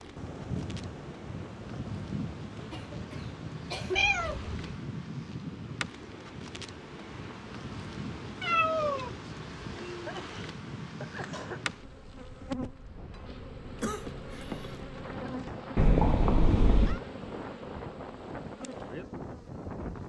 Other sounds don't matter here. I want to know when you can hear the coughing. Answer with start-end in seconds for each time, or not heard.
2.7-4.2, 9.9-11.7, 13.8-14.8.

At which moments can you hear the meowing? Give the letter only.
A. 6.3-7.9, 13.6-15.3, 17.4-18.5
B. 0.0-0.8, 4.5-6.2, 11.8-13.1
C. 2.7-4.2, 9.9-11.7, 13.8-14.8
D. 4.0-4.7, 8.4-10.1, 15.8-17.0
D.